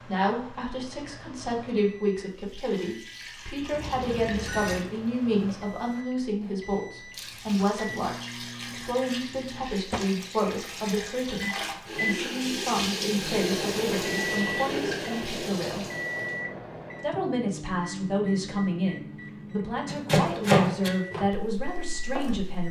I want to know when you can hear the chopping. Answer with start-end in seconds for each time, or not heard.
19.9-22.6.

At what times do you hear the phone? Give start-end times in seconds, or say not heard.
3.7-4.8.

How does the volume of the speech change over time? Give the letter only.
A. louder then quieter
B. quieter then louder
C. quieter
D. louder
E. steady
E.